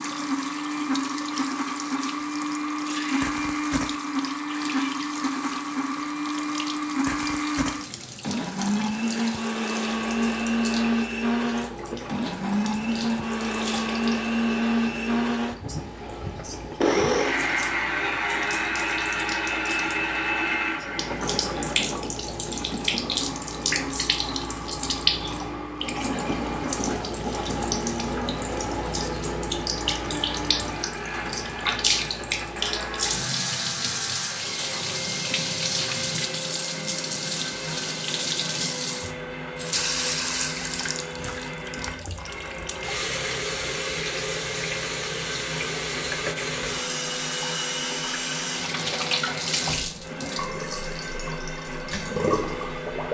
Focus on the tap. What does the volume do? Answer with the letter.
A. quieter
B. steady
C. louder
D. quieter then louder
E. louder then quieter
C.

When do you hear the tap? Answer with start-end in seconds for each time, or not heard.
0.0-53.1.